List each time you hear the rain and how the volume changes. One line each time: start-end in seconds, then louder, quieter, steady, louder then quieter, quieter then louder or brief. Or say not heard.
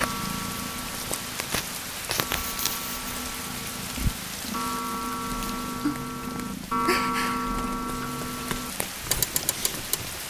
0.0-10.2 steady.